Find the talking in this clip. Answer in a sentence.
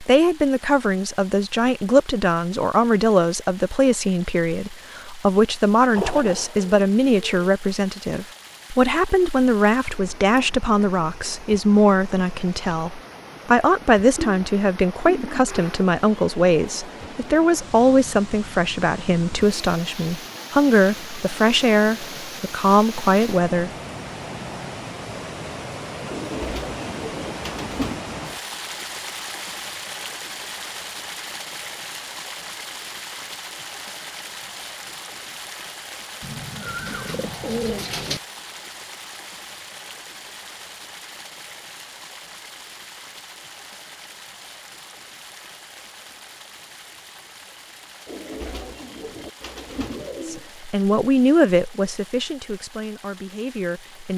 The talking can be heard from 0.0 to 23.7 s and from 50.2 to 54.1 s.